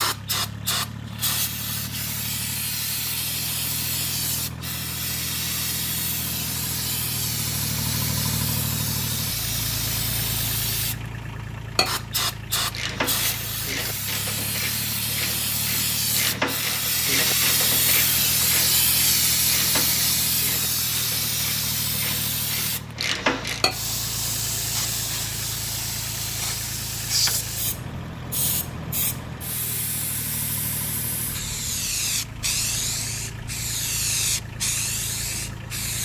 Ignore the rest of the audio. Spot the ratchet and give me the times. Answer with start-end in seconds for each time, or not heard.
12.7-23.6.